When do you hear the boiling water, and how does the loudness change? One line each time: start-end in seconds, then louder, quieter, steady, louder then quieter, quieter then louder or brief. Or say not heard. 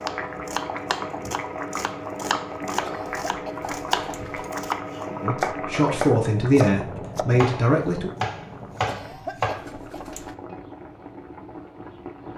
0.0-12.3 quieter.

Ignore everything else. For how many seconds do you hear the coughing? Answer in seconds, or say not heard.
3 s.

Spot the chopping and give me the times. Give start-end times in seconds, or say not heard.
0.1-10.1.